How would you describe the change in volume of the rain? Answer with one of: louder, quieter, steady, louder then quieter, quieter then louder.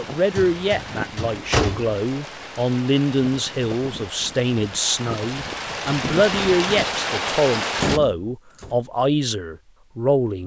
louder.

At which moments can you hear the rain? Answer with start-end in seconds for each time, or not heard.
0.0-8.0.